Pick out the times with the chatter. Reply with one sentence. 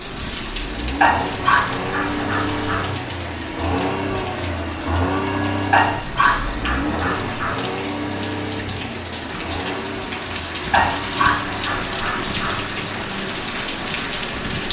You can't hear the chatter here.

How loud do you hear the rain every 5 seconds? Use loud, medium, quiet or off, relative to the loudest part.
medium, medium, loud.